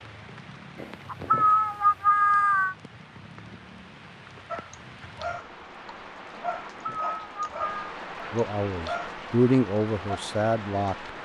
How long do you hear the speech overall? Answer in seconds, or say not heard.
3 s.